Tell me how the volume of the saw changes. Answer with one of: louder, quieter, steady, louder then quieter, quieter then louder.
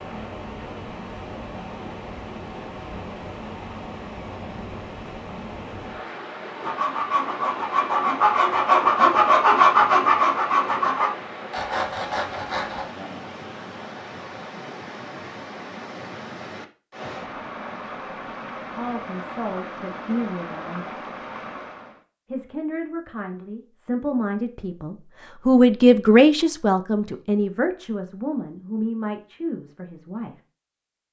louder then quieter.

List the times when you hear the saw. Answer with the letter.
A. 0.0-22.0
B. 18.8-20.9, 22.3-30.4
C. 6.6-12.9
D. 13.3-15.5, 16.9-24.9
C.